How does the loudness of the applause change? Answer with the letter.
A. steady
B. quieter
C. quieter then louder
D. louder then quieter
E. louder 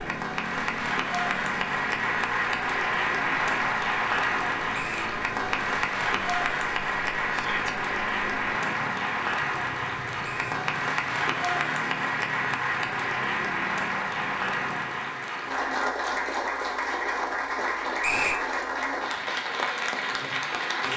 A.